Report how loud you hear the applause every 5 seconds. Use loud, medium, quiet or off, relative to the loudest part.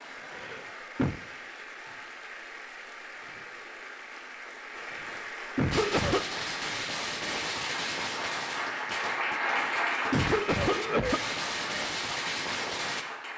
medium, loud, loud.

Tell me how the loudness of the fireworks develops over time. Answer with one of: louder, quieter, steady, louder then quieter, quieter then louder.
quieter then louder.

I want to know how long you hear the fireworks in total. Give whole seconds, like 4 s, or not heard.
7 s.